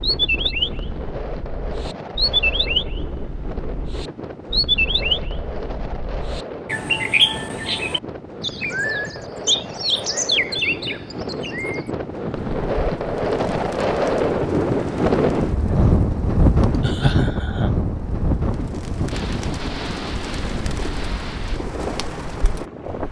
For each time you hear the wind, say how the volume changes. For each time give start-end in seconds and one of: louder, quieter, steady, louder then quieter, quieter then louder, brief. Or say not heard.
0.0-23.0 louder then quieter.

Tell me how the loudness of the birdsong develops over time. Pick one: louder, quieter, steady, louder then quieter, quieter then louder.
quieter then louder.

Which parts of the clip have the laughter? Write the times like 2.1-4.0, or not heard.
16.7-17.7.